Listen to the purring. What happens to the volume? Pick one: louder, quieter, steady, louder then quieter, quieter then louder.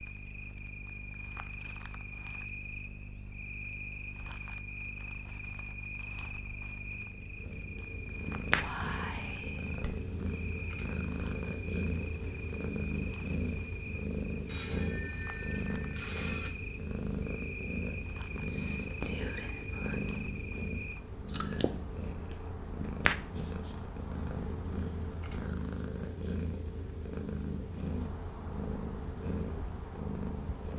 steady.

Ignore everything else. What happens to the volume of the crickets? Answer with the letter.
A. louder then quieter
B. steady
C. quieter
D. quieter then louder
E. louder
C.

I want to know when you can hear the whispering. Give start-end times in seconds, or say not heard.
8.4-10.1, 18.4-20.0.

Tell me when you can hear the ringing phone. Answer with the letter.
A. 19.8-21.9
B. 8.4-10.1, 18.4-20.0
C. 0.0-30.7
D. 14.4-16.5
D.